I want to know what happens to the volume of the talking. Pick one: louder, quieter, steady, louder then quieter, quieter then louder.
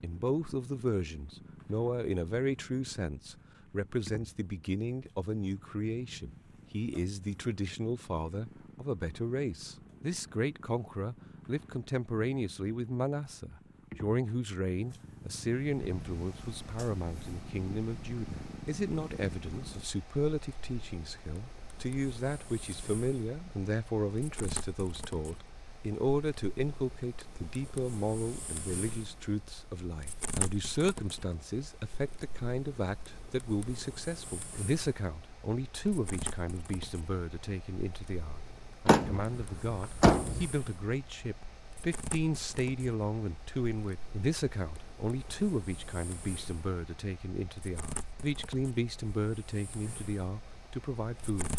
steady.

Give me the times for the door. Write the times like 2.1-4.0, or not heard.
38.9-40.5.